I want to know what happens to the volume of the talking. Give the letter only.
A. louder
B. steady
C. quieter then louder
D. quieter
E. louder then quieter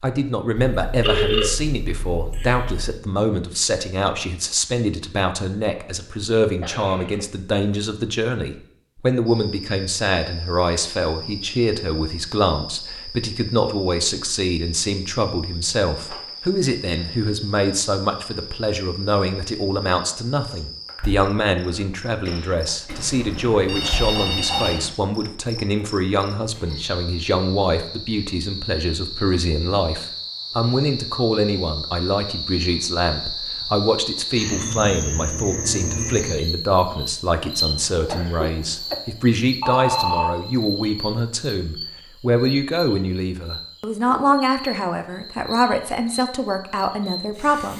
B.